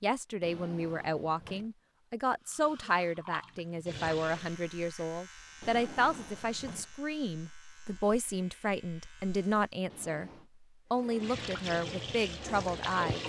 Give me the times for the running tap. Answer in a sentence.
The running tap can be heard from 2.4 to 4.6 s and from 10.9 to 13.2 s.